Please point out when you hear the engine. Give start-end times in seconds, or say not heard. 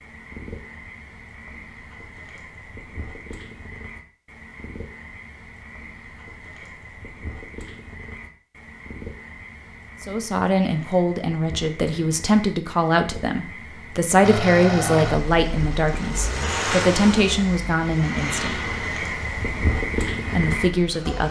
14.2-21.2.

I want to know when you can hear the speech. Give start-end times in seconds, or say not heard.
10.0-18.6, 20.3-21.2.